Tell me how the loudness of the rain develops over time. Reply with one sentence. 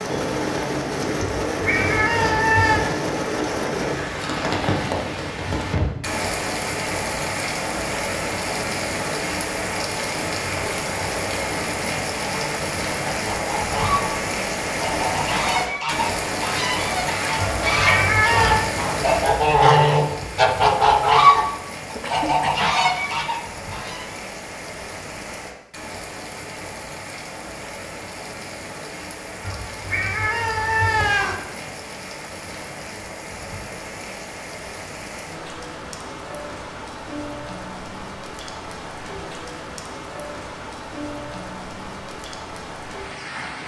The loudness of the rain goes down.